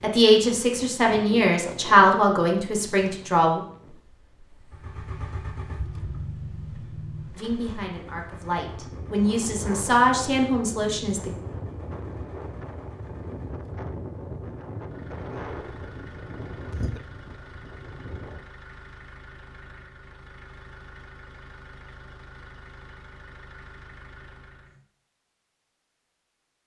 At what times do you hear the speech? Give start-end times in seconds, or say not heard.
0.0-3.6, 7.3-11.3.